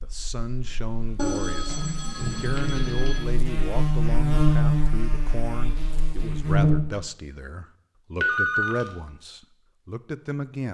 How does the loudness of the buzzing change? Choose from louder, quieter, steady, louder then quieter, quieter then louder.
louder then quieter.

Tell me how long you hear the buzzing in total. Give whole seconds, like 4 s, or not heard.
7 s.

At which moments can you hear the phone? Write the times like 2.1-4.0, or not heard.
1.1-3.2, 8.2-8.8.